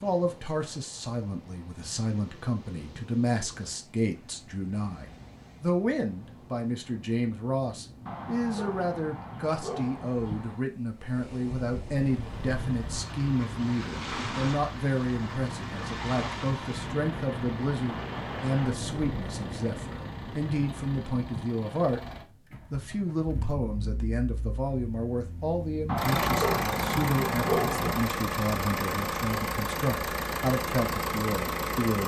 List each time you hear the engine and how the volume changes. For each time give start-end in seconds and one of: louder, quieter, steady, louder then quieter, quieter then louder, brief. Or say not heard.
11.9-32.0 louder.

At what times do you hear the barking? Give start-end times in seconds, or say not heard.
8.1-10.6, 25.9-28.1.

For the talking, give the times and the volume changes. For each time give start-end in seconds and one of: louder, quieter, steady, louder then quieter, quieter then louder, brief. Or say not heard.
0.0-22.0 steady
22.7-32.0 steady.